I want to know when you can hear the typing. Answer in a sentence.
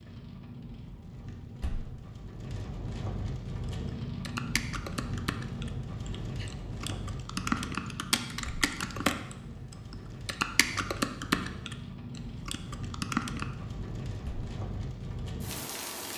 The typing can be heard from 3.6 to 13.5 s.